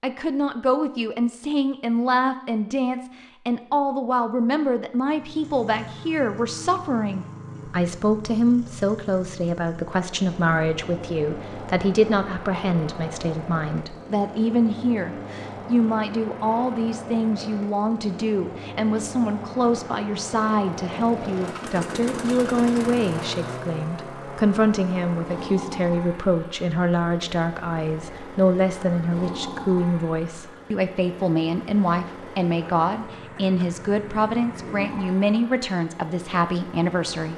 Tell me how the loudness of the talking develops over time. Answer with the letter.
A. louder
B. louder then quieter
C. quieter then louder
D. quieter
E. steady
E.